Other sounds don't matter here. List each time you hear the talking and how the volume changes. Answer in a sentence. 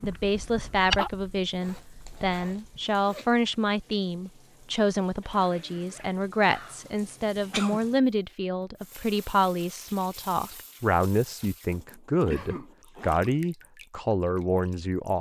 The talking can be heard from 0.0 to 15.1 s, at a steady volume.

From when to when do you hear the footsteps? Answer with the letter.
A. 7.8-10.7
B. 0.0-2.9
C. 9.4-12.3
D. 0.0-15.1
B.